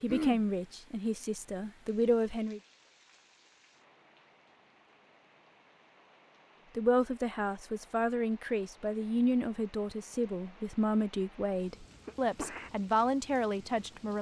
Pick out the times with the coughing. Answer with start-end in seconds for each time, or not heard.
0.1-0.5, 12.1-12.7.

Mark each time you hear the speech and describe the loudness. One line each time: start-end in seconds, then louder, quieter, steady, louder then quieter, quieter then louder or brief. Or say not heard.
0.0-2.6 brief
6.8-14.1 steady.